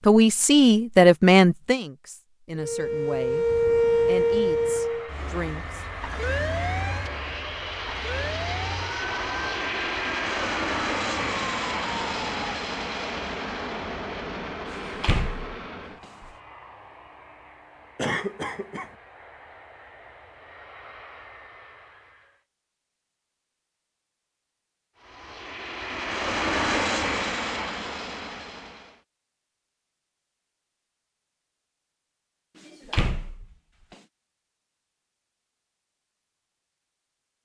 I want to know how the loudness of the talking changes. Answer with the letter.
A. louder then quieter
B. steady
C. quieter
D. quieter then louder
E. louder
C.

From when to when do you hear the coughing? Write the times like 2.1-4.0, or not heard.
17.9-18.9.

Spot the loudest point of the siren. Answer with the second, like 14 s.
4 s.